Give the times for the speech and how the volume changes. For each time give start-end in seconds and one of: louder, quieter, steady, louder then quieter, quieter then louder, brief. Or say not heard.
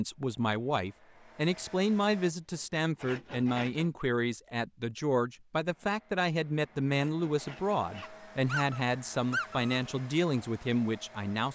0.0-11.5 steady.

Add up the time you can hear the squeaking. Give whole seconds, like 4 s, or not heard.
2 s.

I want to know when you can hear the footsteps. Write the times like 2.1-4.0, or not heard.
not heard.